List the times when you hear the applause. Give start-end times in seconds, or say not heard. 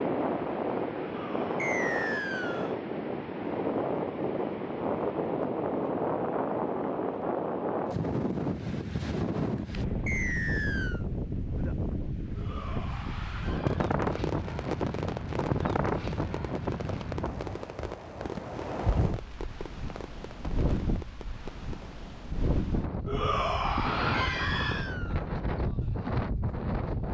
not heard.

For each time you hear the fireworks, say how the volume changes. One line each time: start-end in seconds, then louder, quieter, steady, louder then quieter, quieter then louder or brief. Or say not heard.
13.6-21.9 quieter.